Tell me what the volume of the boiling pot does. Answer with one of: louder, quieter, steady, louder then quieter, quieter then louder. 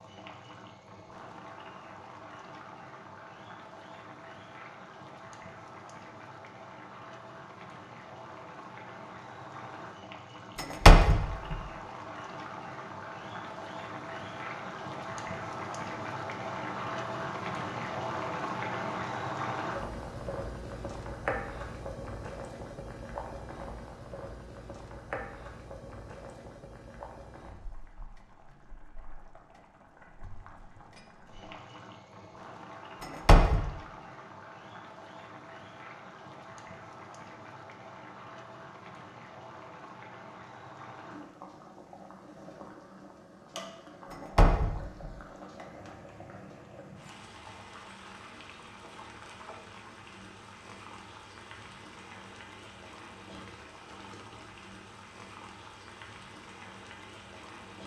louder then quieter.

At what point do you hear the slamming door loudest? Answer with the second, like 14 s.
11 s.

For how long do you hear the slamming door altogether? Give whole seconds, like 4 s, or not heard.
3 s.